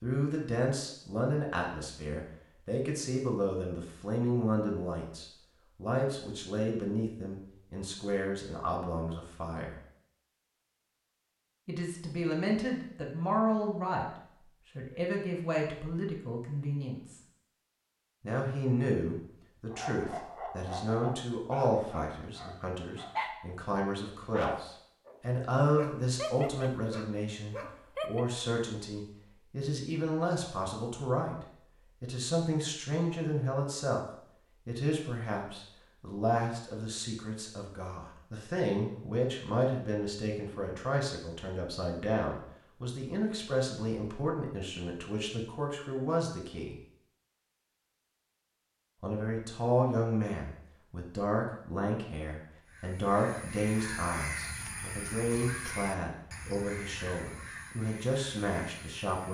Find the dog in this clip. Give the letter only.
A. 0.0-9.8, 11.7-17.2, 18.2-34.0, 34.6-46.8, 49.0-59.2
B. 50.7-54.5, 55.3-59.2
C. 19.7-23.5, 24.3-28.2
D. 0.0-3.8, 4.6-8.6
C.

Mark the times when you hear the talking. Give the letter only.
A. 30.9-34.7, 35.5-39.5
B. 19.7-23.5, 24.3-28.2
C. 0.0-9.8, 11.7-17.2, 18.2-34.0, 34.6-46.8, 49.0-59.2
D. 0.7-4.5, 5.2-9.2
C.